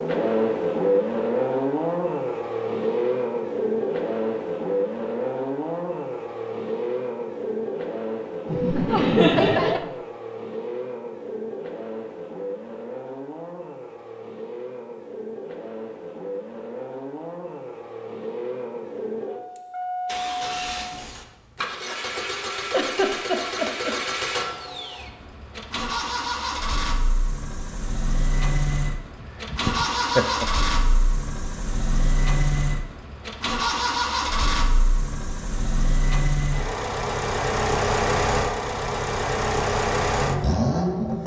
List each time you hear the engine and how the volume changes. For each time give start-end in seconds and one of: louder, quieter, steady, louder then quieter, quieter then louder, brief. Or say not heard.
0.0-41.2 quieter then louder.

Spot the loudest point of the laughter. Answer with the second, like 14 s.
9 s.